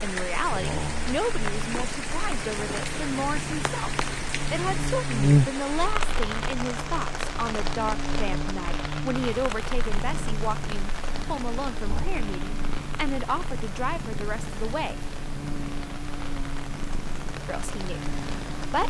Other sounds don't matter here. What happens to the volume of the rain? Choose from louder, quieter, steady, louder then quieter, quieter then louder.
quieter.